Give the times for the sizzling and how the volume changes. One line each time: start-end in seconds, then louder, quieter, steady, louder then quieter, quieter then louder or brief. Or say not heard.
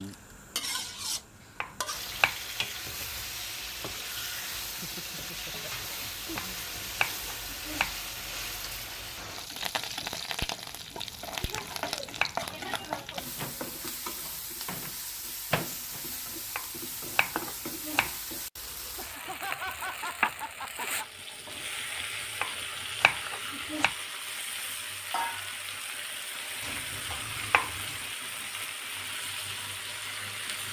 0.0-30.6 steady.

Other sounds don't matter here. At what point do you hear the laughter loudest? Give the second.
20 s.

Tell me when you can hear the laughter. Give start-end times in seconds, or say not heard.
4.8-6.7, 18.9-21.1.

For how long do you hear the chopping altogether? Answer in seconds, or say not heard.
8 s.